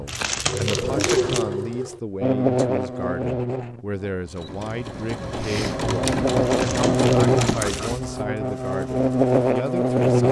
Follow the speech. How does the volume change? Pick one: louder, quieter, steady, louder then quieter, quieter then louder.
steady.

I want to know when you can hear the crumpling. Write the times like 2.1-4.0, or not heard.
0.1-1.4, 6.5-8.0.